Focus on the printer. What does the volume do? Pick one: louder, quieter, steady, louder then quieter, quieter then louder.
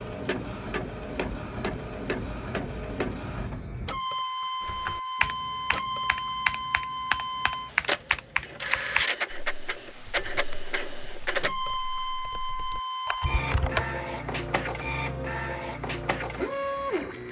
steady.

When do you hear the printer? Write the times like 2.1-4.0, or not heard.
0.0-17.2.